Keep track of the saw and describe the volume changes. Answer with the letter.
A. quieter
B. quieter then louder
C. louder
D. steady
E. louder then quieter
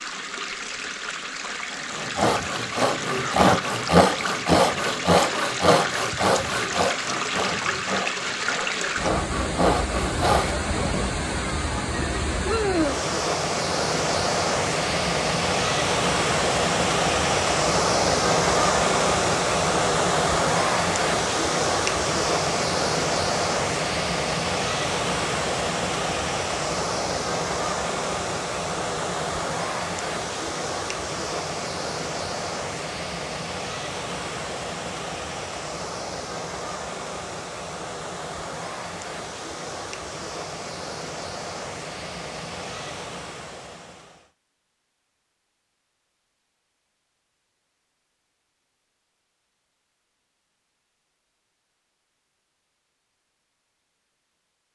B.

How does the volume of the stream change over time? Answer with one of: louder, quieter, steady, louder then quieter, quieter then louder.
louder then quieter.